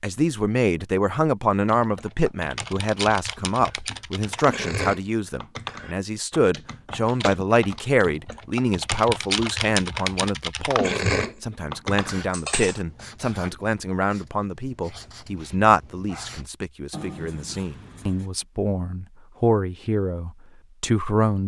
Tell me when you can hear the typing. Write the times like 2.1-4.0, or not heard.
1.6-12.8.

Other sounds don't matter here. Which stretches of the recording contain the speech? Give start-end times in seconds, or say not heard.
0.0-21.4.